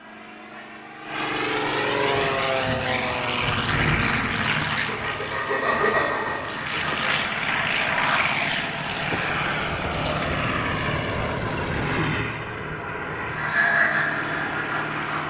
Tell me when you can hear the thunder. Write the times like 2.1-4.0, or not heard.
2.1-4.5.